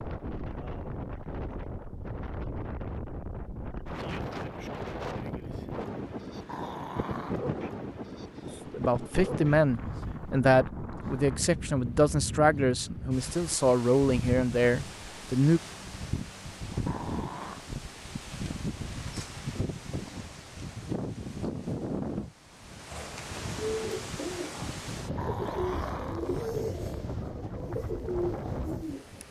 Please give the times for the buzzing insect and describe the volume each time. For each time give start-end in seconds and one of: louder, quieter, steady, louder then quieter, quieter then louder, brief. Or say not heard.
not heard.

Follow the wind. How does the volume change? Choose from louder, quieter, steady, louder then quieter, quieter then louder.
steady.